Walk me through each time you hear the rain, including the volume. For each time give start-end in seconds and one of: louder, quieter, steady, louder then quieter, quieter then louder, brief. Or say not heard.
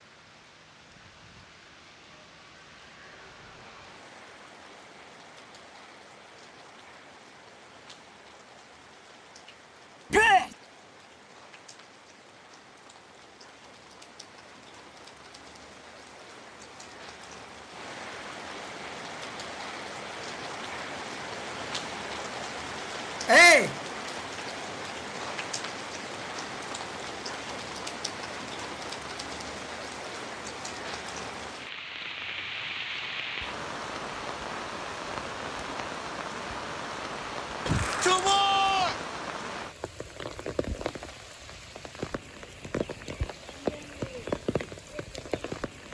0.0-45.8 louder.